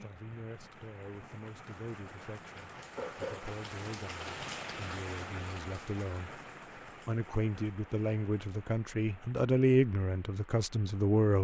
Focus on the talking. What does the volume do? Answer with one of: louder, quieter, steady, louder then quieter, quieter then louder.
louder.